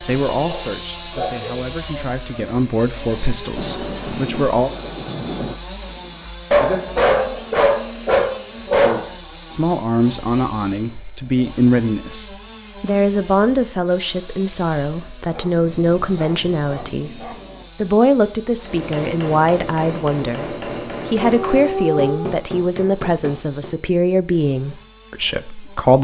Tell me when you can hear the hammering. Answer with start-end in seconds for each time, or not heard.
18.6-23.8.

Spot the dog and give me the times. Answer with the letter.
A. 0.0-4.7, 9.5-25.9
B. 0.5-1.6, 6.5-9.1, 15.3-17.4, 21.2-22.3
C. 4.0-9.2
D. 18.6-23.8
B.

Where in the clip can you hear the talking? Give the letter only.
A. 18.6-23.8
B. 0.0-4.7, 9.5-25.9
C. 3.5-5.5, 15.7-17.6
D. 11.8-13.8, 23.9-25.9
B.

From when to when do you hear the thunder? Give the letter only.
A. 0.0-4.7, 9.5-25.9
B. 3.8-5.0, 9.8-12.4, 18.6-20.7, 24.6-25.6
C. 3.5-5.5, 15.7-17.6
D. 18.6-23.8
C.